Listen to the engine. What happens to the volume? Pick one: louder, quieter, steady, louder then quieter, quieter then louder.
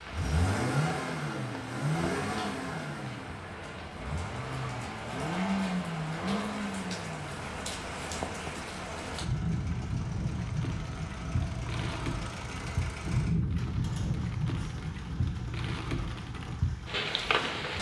quieter.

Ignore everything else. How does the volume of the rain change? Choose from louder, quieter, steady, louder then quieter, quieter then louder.
louder.